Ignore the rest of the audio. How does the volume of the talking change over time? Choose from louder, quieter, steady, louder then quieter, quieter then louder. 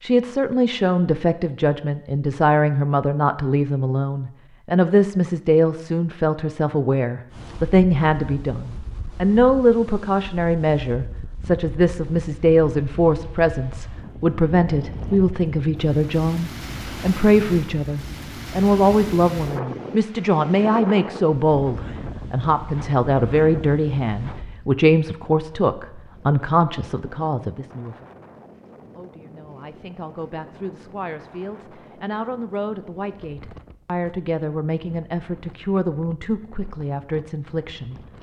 quieter.